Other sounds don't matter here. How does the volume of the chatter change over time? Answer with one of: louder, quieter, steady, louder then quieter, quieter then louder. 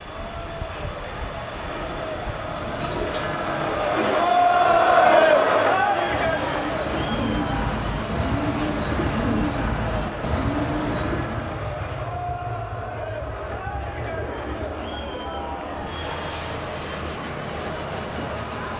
louder then quieter.